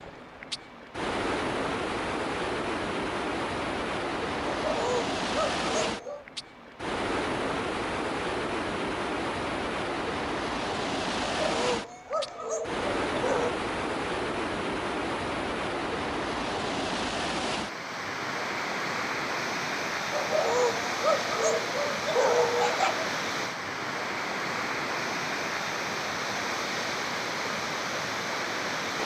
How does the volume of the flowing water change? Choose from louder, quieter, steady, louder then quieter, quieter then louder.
steady.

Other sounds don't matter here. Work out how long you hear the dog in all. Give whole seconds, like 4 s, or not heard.
7 s.